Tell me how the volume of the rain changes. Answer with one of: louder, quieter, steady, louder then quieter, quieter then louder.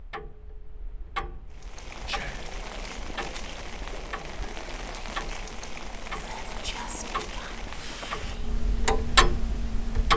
steady.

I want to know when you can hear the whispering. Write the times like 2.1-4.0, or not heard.
2.0-2.5, 6.2-8.5.